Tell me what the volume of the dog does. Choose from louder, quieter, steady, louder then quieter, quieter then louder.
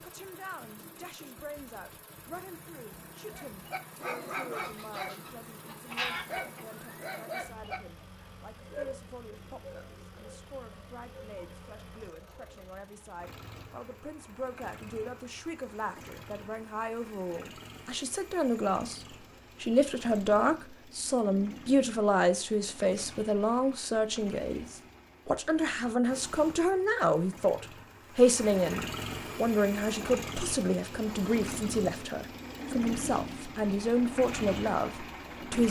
quieter.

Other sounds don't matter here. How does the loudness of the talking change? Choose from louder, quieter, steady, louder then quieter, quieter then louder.
louder.